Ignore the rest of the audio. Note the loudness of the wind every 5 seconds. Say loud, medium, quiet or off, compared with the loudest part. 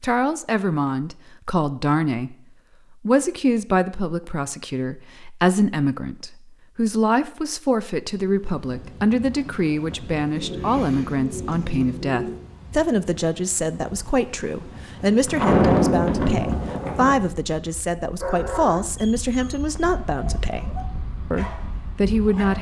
off, quiet, quiet, loud, quiet.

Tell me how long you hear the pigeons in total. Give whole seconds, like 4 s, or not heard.
2 s.